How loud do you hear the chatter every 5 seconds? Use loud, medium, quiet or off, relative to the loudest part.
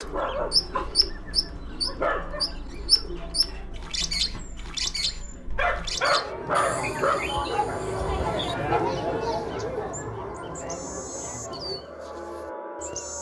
quiet, loud, medium.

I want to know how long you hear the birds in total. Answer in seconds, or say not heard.
13 s.